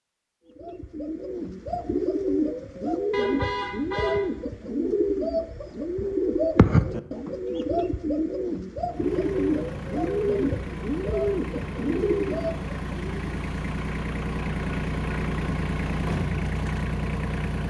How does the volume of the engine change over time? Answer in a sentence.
The loudness of the engine goes up.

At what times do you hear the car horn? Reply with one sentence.
The car horn can be heard from 3.1 to 4.3 s.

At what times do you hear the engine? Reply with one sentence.
The engine can be heard from 8.8 to 17.6 s.